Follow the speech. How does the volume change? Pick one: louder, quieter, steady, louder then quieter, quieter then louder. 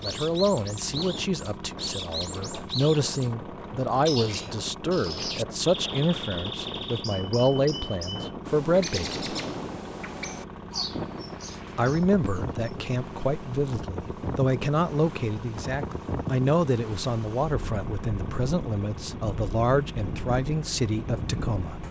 steady.